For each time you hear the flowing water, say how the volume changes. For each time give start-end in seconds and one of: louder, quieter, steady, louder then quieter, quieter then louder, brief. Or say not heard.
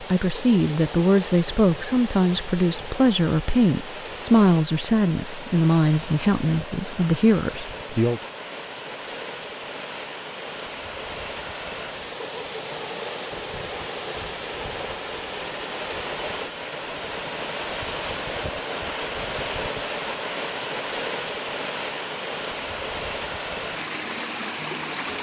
0.0-25.1 louder.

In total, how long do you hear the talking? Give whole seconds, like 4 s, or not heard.
8 s.